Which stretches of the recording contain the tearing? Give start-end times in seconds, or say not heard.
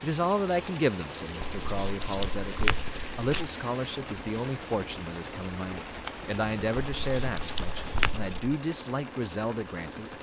1.4-3.5, 7.0-8.6.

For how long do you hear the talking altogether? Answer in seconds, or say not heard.
10 s.